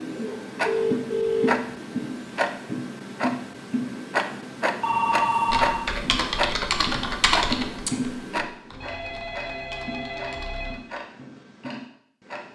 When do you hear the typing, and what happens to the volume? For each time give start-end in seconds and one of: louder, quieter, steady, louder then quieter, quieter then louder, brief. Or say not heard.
5.5-10.8 quieter then louder.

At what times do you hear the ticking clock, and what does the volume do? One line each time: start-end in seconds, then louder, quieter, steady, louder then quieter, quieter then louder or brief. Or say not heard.
0.0-12.4 quieter.